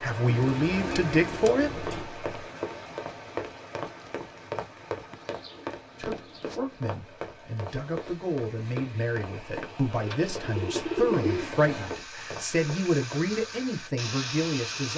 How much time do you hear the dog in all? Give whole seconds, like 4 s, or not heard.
not heard.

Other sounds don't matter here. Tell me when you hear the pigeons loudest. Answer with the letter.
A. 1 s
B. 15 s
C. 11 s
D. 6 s
C.